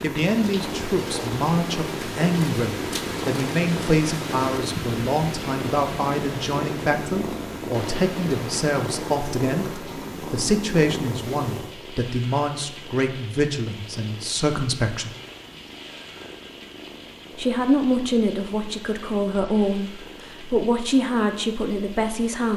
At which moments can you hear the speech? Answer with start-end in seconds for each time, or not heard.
0.0-15.1, 17.4-22.5.